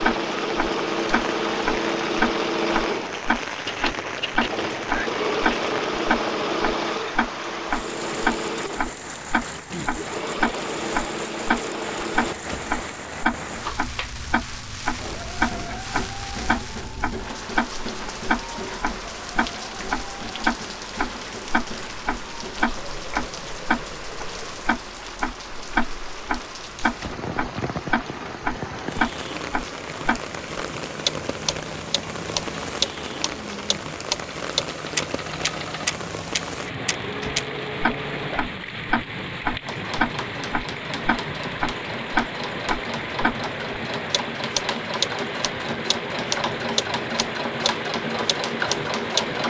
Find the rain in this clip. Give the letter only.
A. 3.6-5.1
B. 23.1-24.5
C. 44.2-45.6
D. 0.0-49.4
D.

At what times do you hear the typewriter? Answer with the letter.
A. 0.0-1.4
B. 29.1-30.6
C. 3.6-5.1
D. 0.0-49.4
C.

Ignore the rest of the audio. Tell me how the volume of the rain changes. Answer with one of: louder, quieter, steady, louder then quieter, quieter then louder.
steady.